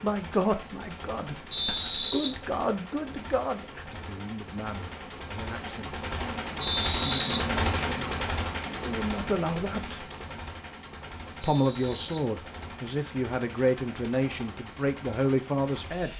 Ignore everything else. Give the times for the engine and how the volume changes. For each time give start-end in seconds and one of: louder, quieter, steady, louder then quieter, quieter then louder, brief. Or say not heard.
0.0-16.1 louder then quieter.